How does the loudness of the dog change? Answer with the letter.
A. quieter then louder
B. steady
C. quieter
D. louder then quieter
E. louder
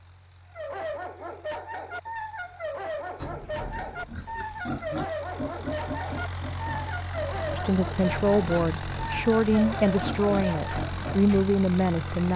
B.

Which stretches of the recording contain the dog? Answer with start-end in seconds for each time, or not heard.
0.5-10.8.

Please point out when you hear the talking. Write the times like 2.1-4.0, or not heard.
7.5-12.3.